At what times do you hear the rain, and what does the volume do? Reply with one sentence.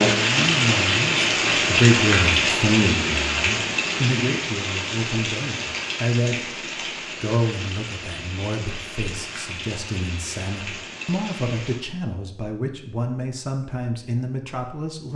You can hear the rain from 0.0 to 11.8 s, getting quieter.